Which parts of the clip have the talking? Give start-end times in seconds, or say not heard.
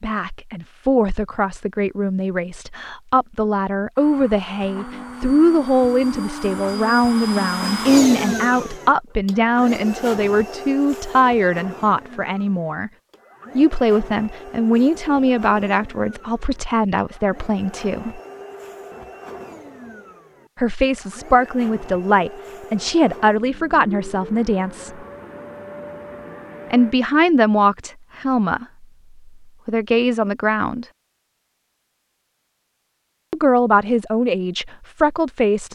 0.0-12.9, 13.6-18.2, 20.6-25.0, 26.7-28.9, 29.6-30.9, 33.3-35.6.